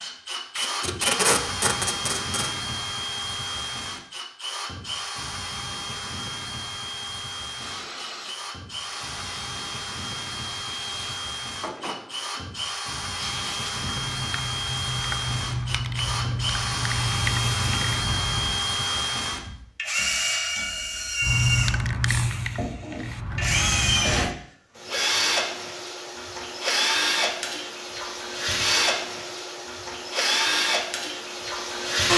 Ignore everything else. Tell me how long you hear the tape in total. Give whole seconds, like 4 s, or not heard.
2 s.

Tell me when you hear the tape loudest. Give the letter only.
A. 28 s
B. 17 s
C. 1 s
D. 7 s
C.